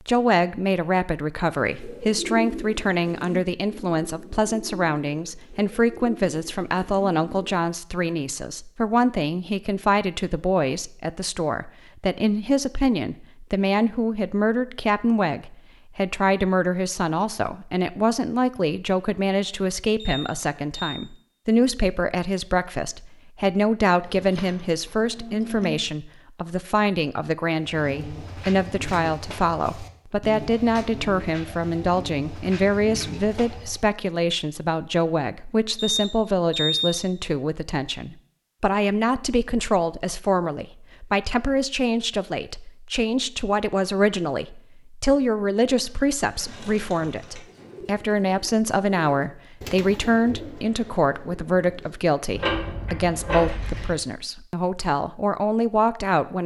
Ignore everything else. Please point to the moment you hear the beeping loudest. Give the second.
37 s.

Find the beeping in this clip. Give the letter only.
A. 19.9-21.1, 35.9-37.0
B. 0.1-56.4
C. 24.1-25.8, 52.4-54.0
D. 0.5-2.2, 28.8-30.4
A.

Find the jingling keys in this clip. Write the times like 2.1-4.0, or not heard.
24.1-25.8, 52.4-54.0.